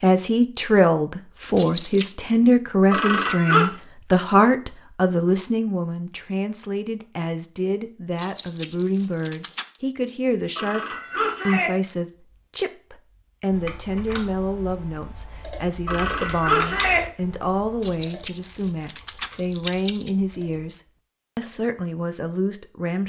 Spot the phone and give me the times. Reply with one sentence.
You can hear the phone from 2.9 to 3.7 s, from 10.6 to 11.7 s and from 15.8 to 17.0 s.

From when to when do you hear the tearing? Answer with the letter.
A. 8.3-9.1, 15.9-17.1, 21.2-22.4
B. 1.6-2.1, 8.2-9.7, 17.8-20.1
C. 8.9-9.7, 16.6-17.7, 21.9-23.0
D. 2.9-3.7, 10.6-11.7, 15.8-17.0
B.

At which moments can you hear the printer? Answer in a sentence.
The printer can't be heard in this clip.